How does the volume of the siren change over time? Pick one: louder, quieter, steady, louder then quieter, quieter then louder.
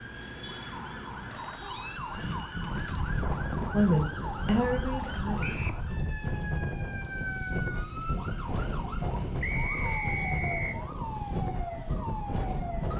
steady.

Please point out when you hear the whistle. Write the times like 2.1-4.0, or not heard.
1.4-2.5, 5.4-5.8, 9.4-10.8.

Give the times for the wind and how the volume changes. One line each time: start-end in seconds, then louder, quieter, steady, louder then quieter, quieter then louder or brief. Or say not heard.
2.0-12.9 steady.